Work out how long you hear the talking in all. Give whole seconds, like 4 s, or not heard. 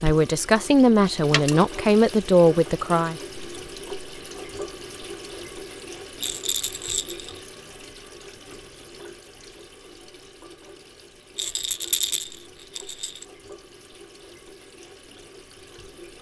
3 s.